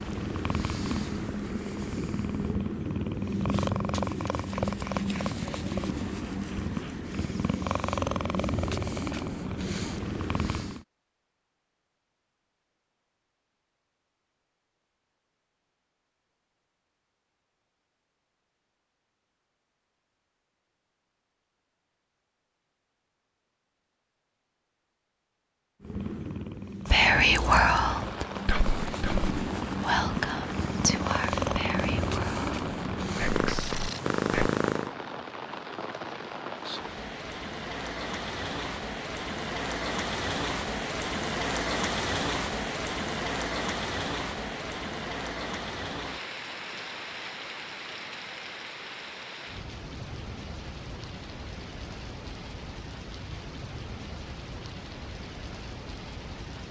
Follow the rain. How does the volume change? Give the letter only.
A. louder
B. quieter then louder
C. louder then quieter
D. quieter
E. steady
C.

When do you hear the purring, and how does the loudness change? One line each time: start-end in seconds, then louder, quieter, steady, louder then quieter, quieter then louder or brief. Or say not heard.
0.0-10.8 steady
25.8-35.0 louder.